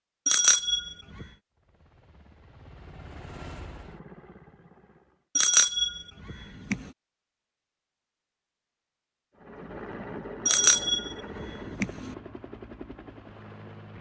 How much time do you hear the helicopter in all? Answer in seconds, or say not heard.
8 s.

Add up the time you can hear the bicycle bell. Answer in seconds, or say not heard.
4 s.